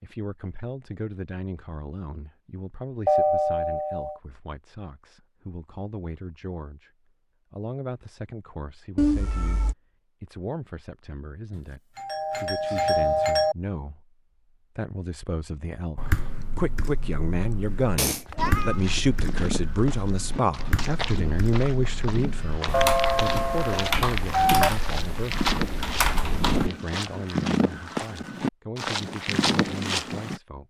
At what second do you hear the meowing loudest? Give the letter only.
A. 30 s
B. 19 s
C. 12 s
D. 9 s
D.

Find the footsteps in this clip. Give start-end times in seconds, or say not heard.
18.4-30.4.